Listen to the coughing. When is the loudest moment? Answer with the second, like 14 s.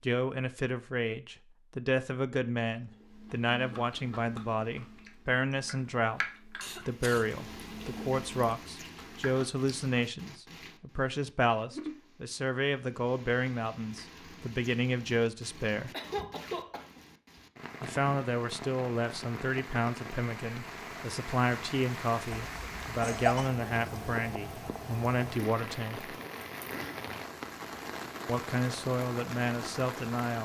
23 s.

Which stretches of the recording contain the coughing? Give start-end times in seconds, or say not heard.
6.6-7.2, 15.9-17.0, 22.3-23.5.